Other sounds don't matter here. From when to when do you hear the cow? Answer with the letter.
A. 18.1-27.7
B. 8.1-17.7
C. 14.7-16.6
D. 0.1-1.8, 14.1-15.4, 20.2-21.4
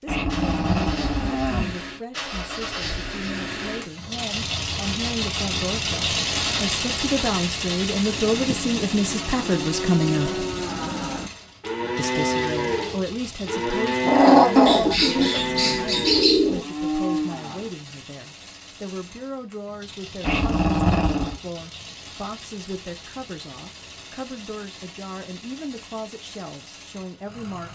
B.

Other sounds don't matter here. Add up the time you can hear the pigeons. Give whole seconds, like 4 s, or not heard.
2 s.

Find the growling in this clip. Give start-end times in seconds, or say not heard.
0.1-1.8, 14.1-15.4, 20.2-21.4.